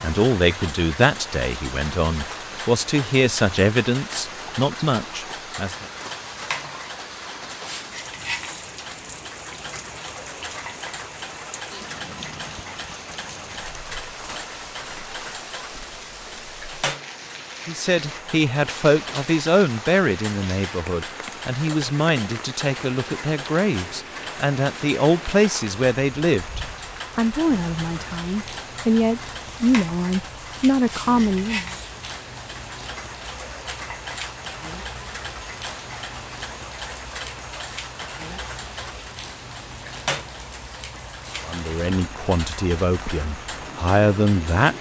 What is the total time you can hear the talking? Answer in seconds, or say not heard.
23 s.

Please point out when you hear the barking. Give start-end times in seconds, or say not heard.
not heard.